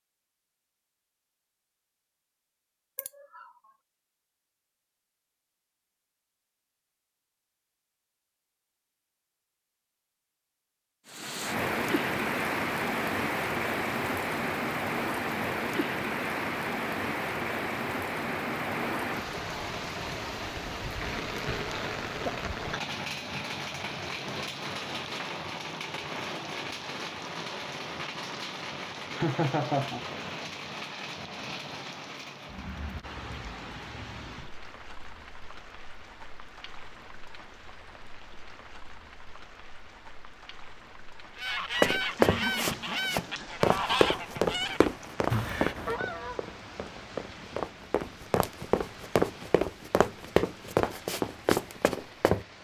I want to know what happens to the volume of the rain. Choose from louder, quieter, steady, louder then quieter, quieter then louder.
quieter.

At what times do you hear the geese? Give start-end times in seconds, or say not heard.
41.4-47.2.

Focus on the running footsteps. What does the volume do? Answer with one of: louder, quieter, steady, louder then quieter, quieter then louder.
quieter then louder.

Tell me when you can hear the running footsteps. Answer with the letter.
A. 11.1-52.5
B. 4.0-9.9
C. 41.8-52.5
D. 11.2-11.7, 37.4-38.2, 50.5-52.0
C.